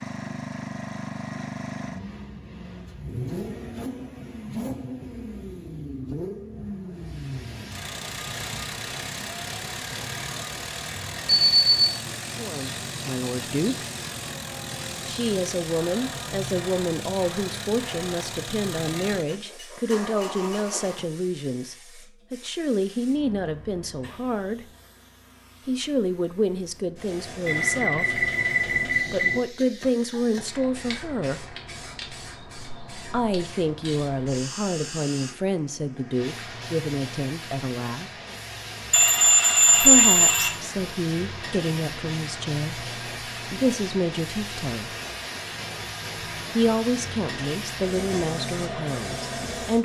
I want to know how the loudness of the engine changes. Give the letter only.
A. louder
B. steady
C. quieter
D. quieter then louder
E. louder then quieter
B.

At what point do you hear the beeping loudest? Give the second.
40 s.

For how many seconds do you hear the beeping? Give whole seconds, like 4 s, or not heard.
4 s.